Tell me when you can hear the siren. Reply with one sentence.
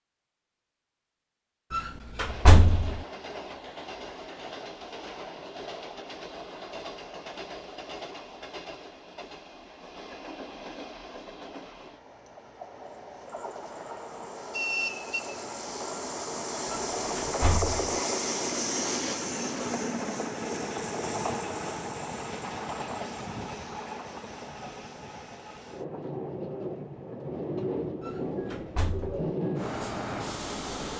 You can't hear the siren here.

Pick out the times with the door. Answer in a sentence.
The door can be heard from 1.7 to 3.0 s, from 16.7 to 17.9 s and from 28.0 to 29.3 s.